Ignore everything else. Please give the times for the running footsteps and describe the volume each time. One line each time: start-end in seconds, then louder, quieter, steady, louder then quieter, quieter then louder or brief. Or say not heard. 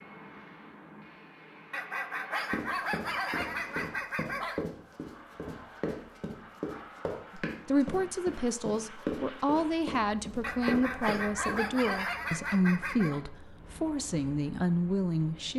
2.5-11.6 steady.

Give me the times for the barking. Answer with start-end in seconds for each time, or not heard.
1.7-4.7, 10.4-13.2.